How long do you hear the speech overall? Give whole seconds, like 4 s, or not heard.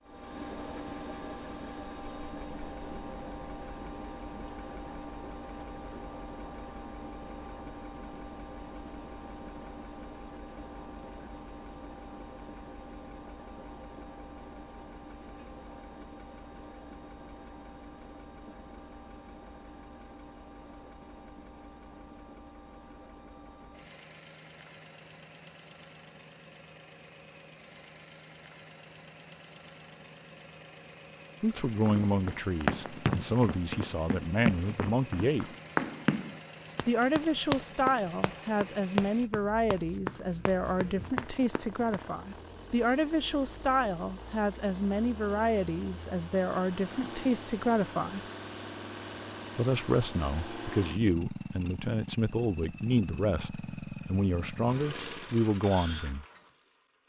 22 s.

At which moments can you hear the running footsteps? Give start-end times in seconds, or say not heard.
31.8-42.0.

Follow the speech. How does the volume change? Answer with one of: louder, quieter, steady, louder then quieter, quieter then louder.
steady.